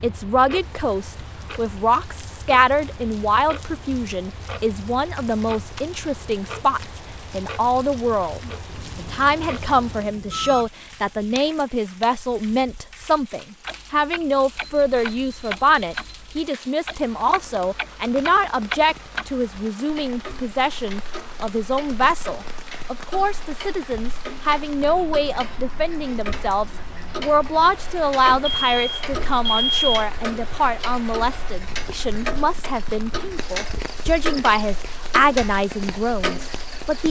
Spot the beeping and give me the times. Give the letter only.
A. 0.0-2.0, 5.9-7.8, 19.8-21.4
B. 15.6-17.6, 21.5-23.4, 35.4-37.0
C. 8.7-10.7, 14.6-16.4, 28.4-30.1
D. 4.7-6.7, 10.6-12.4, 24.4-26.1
C.